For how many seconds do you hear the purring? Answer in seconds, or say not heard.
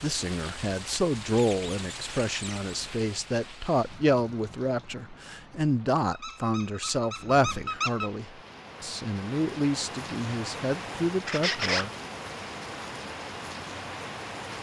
not heard.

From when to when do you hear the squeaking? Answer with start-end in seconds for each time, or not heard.
1.4-2.8, 6.1-8.1, 11.2-11.8.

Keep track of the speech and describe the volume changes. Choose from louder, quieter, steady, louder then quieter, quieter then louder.
steady.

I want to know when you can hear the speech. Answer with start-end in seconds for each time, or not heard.
0.0-11.9.